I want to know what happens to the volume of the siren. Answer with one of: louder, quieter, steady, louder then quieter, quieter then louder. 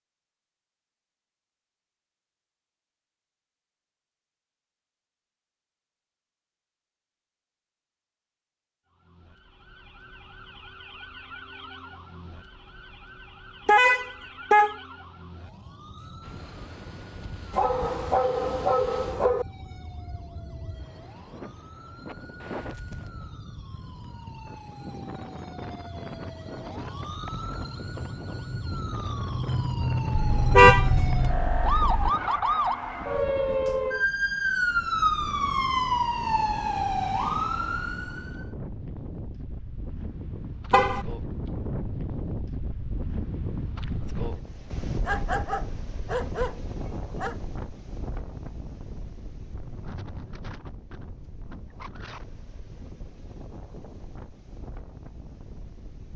louder.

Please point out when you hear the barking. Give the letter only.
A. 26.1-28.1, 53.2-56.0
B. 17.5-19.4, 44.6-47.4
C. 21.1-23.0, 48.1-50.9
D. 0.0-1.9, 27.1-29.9
B.